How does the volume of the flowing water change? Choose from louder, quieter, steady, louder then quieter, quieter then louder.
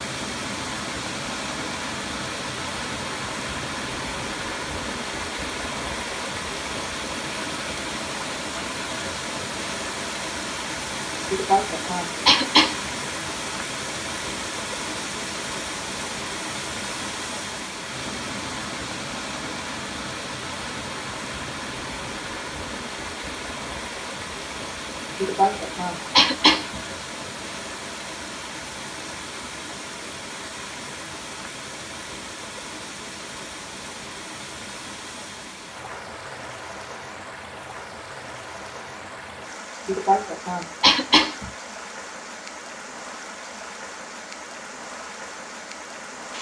quieter.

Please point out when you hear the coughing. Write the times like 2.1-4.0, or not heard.
11.3-12.9, 25.2-26.8, 39.9-41.5.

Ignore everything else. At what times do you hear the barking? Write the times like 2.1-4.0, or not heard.
not heard.